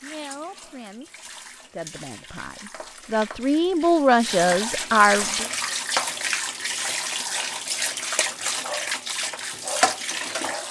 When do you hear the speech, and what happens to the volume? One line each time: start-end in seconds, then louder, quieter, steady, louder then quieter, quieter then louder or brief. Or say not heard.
0.0-5.5 louder.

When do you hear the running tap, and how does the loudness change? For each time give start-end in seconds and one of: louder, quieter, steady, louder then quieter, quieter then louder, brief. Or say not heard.
0.0-10.6 louder.